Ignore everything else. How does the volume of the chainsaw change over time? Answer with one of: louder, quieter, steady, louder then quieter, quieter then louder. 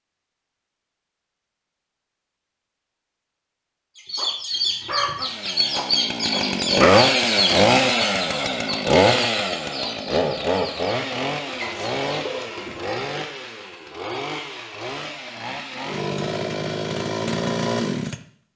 quieter then louder.